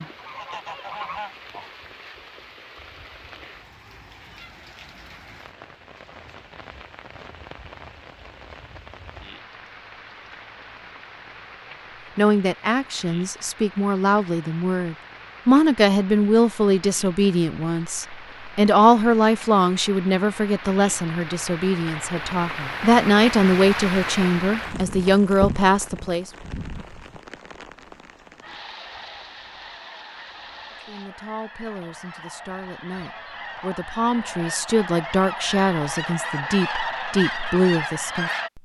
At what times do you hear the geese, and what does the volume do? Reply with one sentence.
You can hear the geese briefly from 0.0 to 1.7 s; and from 28.4 to 38.5 s, getting louder.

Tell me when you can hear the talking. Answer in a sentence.
The talking can be heard from 12.2 to 26.3 s and from 30.9 to 38.6 s.